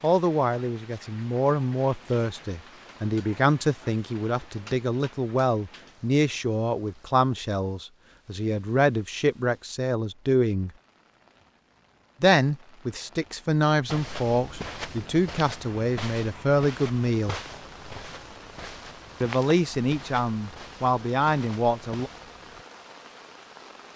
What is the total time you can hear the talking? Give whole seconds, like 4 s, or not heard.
19 s.